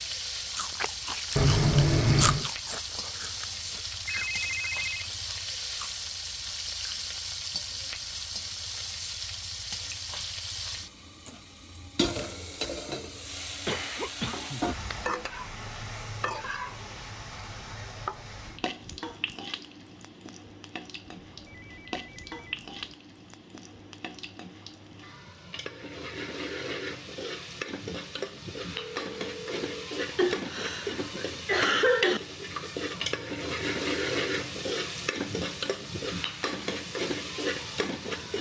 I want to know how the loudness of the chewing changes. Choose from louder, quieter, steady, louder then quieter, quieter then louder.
louder then quieter.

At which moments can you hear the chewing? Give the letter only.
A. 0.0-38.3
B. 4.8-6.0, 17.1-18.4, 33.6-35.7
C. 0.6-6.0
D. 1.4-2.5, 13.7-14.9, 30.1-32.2
C.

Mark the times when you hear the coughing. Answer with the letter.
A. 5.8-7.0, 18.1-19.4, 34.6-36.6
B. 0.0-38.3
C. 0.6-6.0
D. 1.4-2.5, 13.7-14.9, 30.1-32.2
D.